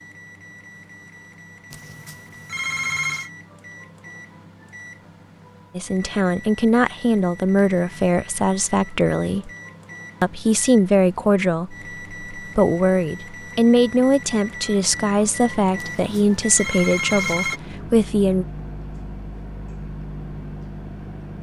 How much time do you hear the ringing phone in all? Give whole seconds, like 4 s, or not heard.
4 s.